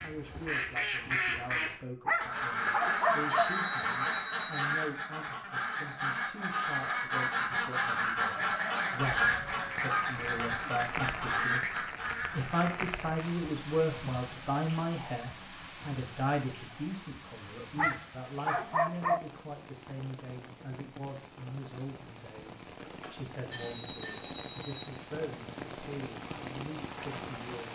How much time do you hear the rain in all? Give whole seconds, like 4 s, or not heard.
19 s.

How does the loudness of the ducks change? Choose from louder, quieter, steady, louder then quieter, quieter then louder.
steady.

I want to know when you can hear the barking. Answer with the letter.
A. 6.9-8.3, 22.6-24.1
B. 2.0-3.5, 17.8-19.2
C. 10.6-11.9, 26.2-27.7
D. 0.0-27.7
B.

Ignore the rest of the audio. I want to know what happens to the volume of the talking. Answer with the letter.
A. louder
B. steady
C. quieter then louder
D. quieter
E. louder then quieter
E.